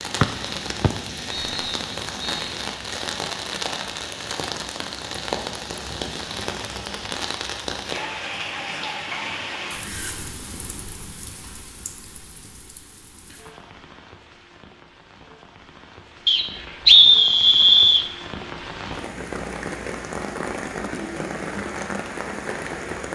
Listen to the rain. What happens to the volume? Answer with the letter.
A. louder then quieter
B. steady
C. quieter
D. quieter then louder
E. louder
D.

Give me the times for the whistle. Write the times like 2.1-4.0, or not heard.
0.2-2.3, 16.2-18.1.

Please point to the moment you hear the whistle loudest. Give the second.
17 s.